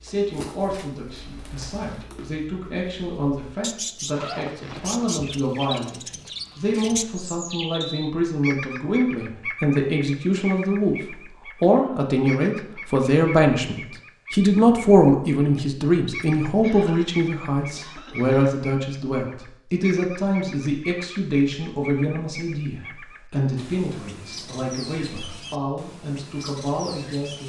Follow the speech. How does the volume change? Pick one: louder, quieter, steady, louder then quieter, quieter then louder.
louder then quieter.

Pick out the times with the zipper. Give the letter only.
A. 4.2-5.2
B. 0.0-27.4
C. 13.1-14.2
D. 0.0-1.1
A.